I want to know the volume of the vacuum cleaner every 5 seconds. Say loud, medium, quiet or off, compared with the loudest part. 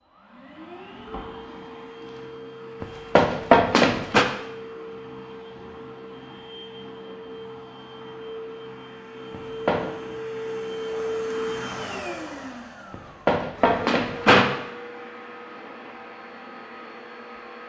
medium, medium, loud, medium.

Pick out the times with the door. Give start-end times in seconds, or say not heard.
2.8-4.2, 9.3-9.8, 12.9-14.4.